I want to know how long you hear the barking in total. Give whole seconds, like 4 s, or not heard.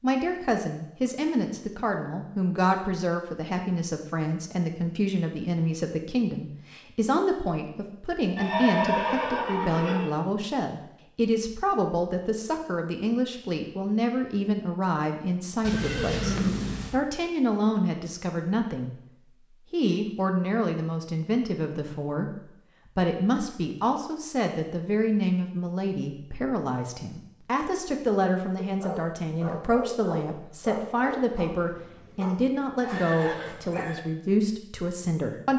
5 s.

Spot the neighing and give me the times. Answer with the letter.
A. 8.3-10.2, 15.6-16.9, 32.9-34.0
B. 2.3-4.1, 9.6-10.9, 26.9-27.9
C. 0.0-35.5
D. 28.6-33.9
A.